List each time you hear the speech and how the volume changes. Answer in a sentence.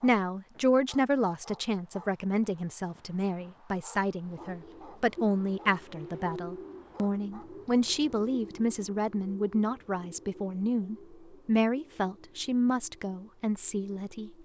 You can hear the speech from 0.0 to 14.3 s, at a steady volume.